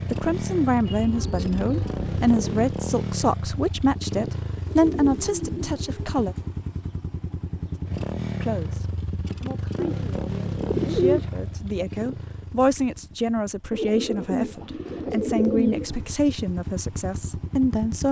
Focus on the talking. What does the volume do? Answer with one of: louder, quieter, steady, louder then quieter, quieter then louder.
quieter then louder.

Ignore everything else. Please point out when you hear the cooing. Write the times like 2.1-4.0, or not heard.
0.8-2.7, 4.7-6.5, 9.8-11.4, 13.7-16.1.